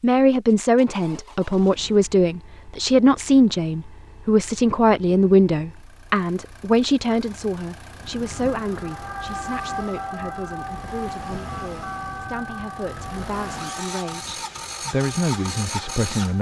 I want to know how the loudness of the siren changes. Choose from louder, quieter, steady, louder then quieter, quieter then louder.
quieter.